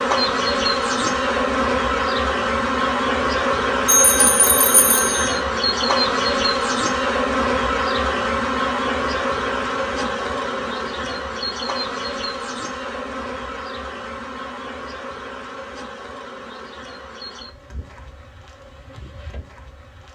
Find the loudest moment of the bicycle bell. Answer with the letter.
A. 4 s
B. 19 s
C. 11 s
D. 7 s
A.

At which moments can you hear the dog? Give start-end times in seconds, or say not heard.
not heard.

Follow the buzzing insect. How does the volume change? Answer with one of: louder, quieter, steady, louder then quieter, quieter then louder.
quieter.